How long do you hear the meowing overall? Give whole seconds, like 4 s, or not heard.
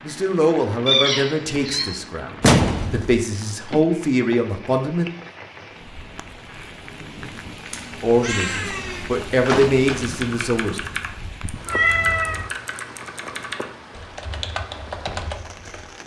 3 s.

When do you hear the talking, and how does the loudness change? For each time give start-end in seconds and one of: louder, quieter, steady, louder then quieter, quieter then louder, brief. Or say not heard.
0.1-5.0 quieter then louder
8.0-10.8 brief.